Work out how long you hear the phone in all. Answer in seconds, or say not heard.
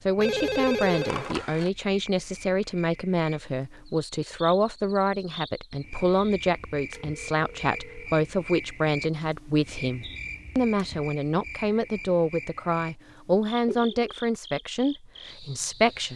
3 s.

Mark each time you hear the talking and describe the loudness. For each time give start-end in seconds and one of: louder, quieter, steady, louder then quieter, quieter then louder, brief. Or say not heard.
0.1-16.1 steady.